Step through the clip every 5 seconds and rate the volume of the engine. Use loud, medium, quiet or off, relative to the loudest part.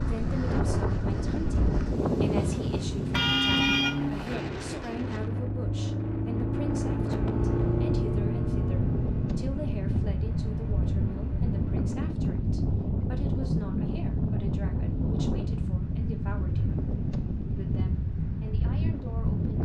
loud, loud, medium, off.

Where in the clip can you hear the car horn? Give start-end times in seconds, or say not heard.
3.1-4.3.